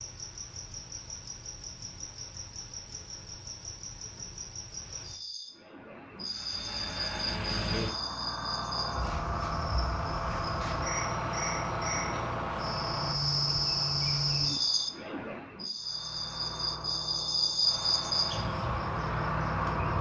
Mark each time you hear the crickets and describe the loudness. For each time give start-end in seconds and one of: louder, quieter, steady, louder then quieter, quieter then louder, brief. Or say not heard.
0.0-19.9 louder.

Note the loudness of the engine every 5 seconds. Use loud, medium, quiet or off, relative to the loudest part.
off, loud, loud, loud.